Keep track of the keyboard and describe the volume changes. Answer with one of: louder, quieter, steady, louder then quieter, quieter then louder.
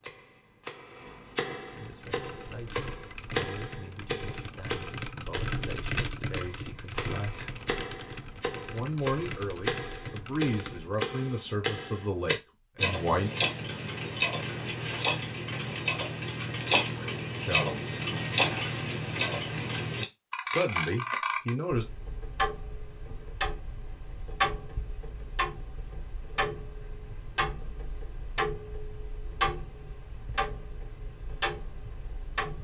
louder then quieter.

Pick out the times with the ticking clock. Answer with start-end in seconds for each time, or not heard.
0.0-32.5.